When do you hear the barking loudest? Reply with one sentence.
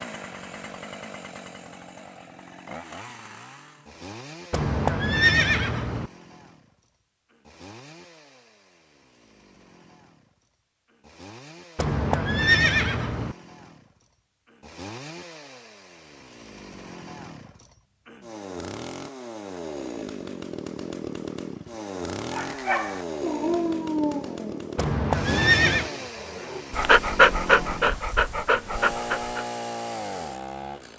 The loudest moment of the barking is at 27 seconds.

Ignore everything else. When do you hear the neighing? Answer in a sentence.
The neighing can be heard from 4.5 to 6.1 s, from 11.8 to 13.3 s and from 24.8 to 25.9 s.